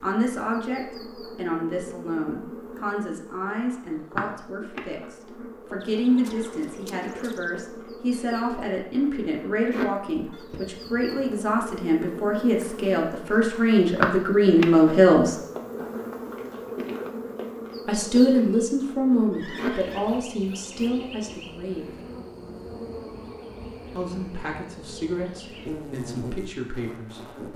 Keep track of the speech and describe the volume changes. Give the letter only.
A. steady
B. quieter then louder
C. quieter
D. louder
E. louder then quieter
E.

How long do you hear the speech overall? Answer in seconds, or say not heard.
23 s.